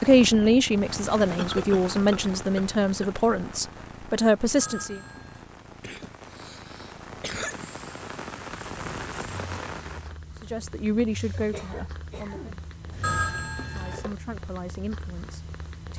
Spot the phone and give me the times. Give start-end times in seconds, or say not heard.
4.6-5.5, 13.0-14.2.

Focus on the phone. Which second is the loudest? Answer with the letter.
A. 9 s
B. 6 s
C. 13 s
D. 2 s
C.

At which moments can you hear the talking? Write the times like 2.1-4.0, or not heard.
0.0-5.0, 10.4-12.5, 13.6-15.9.